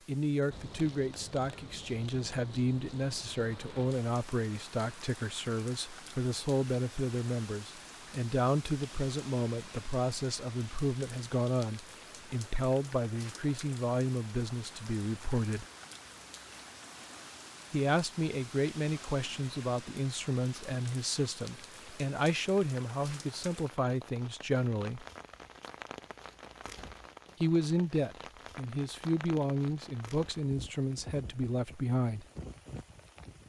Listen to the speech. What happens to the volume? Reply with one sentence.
The loudness of the speech stays about the same.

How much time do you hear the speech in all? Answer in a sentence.
The speech can be heard for 28 seconds in total.